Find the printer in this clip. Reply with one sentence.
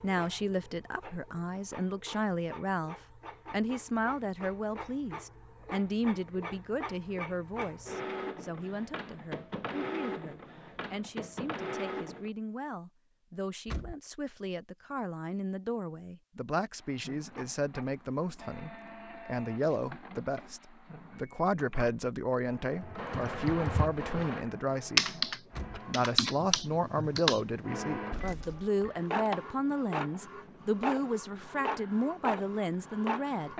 The printer can be heard from 0.0 to 12.3 s, from 16.8 to 26.0 s and from 27.6 to 33.5 s.